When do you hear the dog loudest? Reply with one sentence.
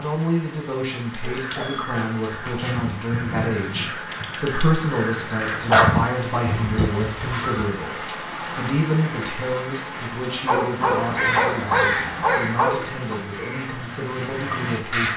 The loudest moment of the dog is at 6 seconds.